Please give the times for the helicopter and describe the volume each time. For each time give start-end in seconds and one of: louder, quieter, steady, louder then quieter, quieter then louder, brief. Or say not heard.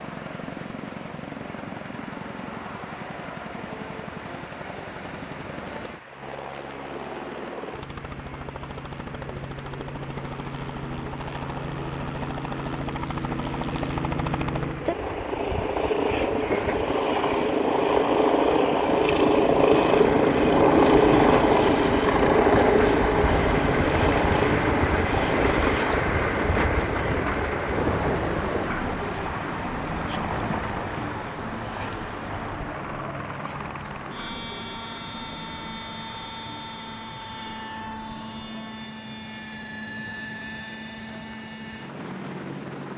0.0-42.9 louder then quieter.